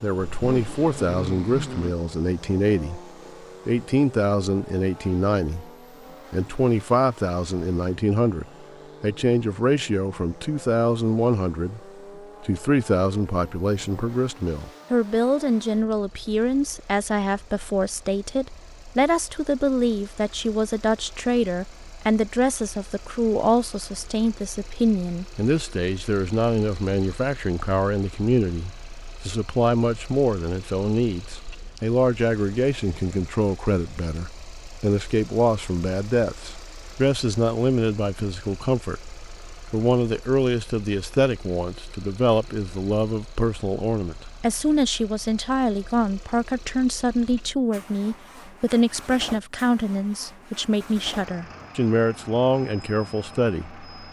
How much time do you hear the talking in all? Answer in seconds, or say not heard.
52 s.